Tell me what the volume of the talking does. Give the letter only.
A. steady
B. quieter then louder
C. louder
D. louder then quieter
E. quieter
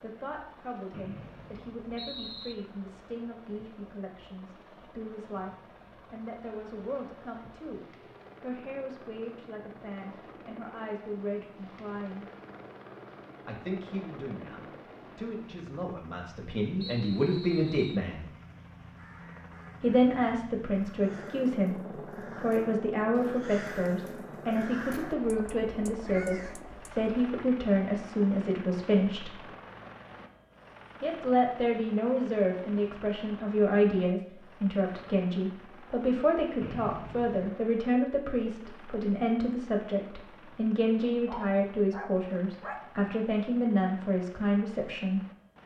C.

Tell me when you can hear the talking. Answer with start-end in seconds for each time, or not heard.
0.0-5.5, 6.1-12.2, 13.4-18.2, 19.8-29.4, 31.0-45.2.